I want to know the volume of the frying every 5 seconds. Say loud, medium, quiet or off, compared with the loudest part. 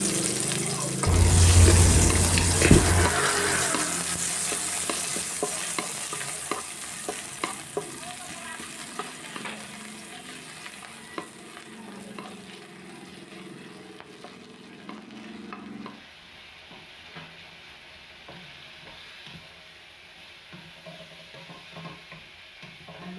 loud, medium, quiet, quiet, quiet.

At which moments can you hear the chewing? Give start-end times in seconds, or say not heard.
1.1-3.1.